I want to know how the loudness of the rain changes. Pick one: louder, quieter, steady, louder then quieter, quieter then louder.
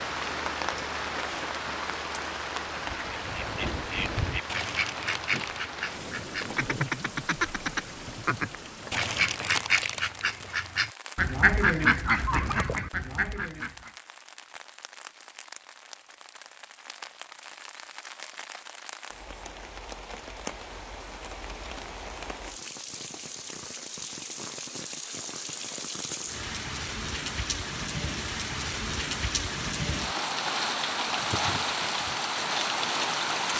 quieter then louder.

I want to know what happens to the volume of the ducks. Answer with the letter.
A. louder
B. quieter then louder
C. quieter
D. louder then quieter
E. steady
A.